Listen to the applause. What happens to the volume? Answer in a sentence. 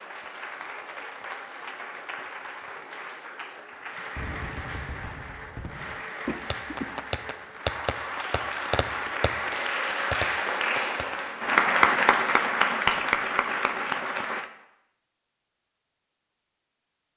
The volume of the applause goes up.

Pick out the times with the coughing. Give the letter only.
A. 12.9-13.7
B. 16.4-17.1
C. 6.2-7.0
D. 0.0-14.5
C.